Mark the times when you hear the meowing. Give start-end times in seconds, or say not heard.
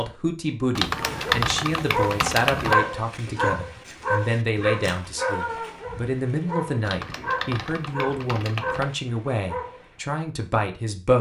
not heard.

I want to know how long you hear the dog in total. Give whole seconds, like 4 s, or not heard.
9 s.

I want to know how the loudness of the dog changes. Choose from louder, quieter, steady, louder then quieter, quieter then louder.
quieter.